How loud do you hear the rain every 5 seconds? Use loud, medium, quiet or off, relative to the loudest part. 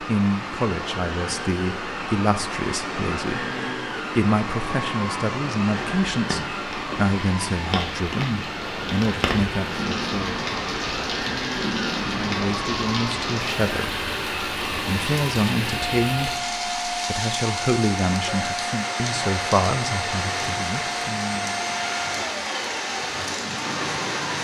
medium, loud, loud, loud, loud.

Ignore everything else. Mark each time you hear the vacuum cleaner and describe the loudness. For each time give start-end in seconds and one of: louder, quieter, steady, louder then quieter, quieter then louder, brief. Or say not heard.
0.0-24.3 steady.